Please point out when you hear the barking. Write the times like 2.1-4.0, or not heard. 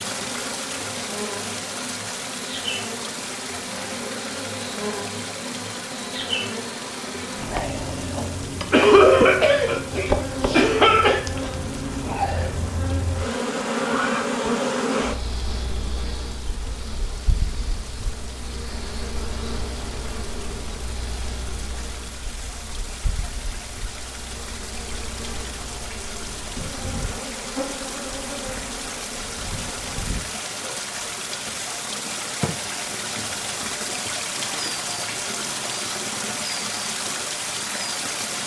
not heard.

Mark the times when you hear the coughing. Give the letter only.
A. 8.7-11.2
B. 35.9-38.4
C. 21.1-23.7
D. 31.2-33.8
A.